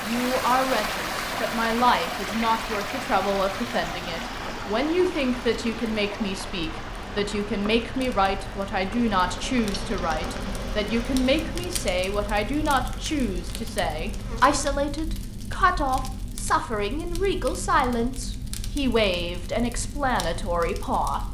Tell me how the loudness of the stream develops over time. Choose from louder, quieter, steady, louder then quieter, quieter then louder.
quieter.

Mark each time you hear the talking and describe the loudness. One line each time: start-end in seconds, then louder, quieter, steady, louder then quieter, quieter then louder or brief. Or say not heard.
0.0-21.2 steady.